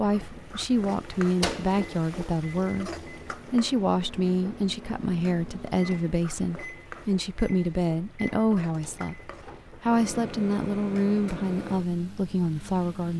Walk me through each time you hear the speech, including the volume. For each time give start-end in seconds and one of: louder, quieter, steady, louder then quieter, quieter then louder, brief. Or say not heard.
0.0-13.1 steady.